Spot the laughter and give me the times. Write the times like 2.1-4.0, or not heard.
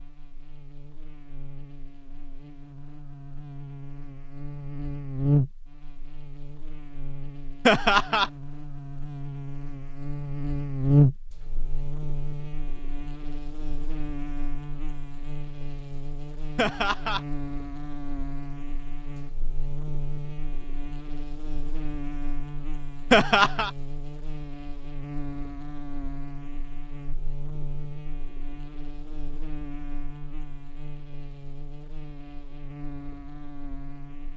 7.7-8.3, 16.6-17.2, 23.1-23.7.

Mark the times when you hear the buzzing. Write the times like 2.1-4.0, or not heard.
0.0-34.3.